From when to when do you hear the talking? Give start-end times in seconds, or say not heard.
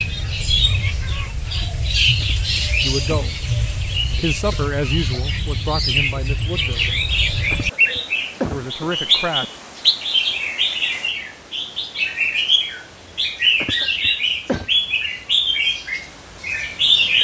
2.8-3.3, 4.0-7.0, 8.4-9.4.